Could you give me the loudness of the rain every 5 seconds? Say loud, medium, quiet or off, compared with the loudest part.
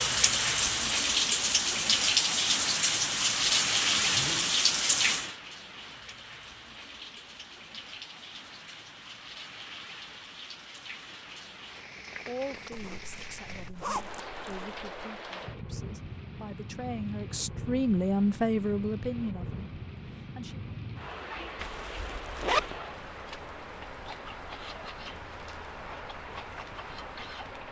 loud, quiet, quiet, quiet, quiet, quiet.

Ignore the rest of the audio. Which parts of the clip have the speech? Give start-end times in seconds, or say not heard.
12.2-20.6.